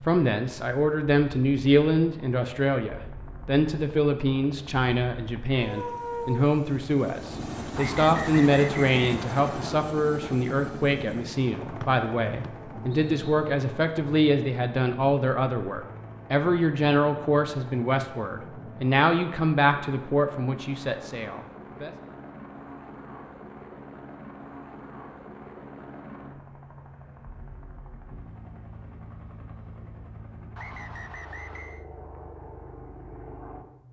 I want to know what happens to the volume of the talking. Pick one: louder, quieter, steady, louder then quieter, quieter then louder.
steady.